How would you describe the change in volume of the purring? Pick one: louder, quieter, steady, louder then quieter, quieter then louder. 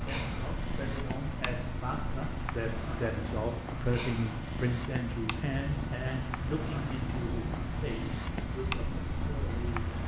steady.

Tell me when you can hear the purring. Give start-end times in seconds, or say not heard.
0.0-10.0.